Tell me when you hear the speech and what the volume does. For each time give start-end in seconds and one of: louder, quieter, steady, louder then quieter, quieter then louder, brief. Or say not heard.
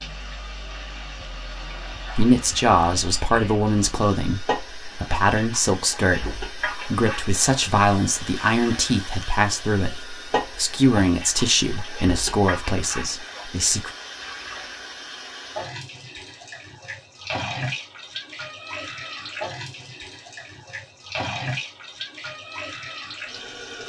2.1-13.9 steady.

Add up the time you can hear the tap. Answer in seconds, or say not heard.
24 s.